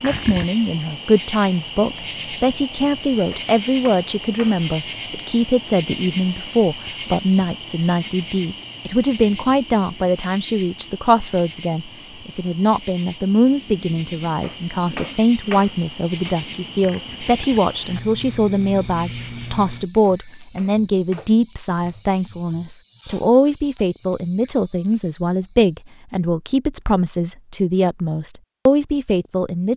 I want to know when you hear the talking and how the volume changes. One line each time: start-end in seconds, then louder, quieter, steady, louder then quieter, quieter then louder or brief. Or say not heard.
0.0-29.7 steady.